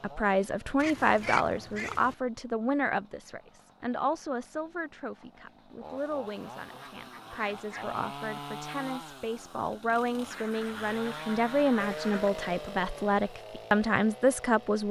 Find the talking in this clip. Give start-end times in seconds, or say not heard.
0.0-14.8.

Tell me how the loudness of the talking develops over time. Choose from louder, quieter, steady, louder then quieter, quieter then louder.
quieter then louder.